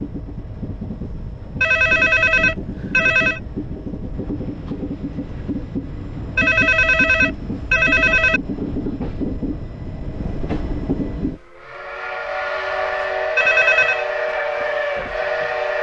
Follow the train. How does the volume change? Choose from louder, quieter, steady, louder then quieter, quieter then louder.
louder.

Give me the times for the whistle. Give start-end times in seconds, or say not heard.
not heard.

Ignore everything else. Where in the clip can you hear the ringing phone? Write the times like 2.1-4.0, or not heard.
1.6-3.4, 6.3-8.4, 13.3-14.1.